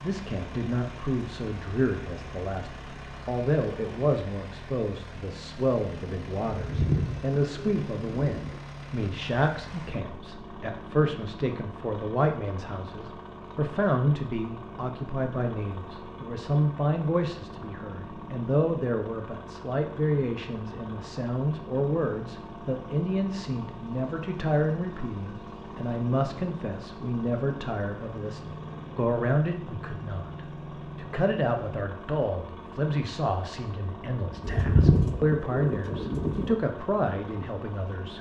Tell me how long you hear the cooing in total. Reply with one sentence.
You can hear the cooing for 4 seconds altogether.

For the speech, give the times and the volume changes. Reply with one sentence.
The speech can be heard from 0.0 to 38.1 s, at a steady volume.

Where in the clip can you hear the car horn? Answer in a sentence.
You can't hear the car horn here.